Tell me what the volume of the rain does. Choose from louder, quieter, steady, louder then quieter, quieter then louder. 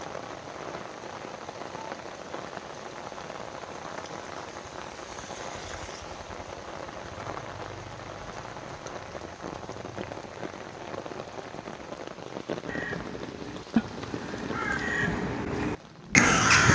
steady.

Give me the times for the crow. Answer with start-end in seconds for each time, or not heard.
12.7-16.6.